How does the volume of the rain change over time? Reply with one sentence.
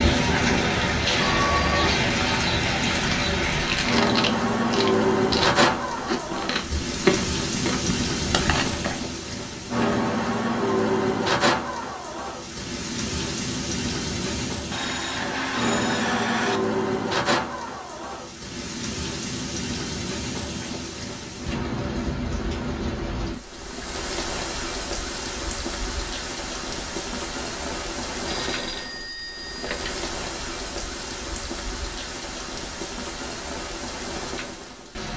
The loudness of the rain goes down.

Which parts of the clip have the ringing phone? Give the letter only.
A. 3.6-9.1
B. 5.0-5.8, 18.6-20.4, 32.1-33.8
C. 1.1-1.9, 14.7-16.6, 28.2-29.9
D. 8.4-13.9
C.